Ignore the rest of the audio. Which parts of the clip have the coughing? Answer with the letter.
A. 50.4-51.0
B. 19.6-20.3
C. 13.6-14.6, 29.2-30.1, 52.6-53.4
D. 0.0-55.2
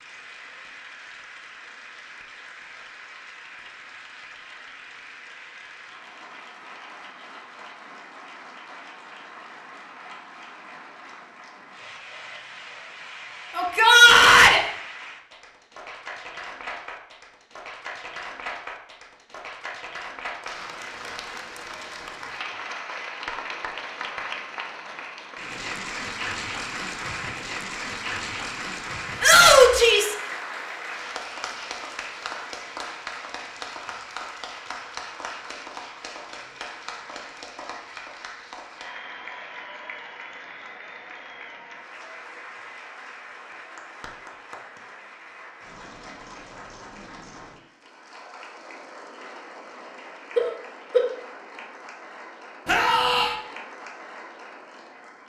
A.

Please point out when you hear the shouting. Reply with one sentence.
The shouting can be heard from 13.6 to 14.6 s, from 29.2 to 30.1 s and from 52.6 to 53.4 s.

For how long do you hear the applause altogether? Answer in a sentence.
The applause can be heard for 55 seconds in total.